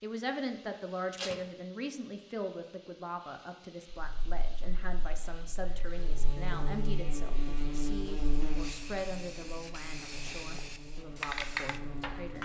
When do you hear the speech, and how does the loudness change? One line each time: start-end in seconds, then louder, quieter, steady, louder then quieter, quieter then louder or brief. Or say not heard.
0.0-12.4 quieter.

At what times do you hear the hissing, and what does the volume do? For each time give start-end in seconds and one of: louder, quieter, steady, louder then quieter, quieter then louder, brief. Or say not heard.
0.0-12.4 louder.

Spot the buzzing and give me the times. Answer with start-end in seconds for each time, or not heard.
3.9-12.4.